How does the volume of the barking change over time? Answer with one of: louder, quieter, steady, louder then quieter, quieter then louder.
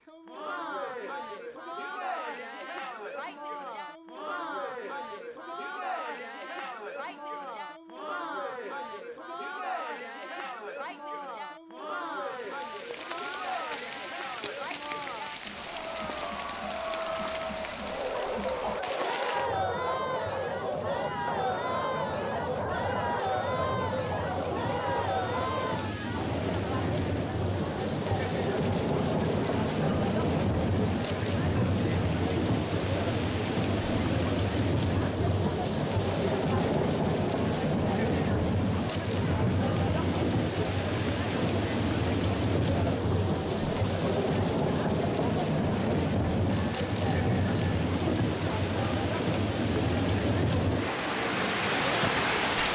steady.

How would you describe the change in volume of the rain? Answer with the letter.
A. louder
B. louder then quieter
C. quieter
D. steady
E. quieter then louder
A.